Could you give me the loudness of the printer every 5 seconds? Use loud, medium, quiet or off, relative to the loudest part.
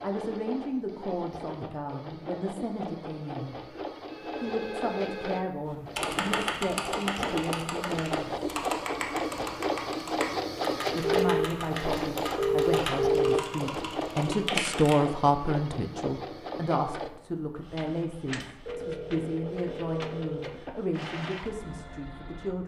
medium, loud, loud, medium, medium.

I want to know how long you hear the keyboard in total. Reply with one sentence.
You can hear the keyboard for 9 seconds altogether.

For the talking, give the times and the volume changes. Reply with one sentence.
The talking can be heard from 0.0 to 8.4 s, at a steady volume; and from 10.9 to 22.6 s, getting louder then quieter.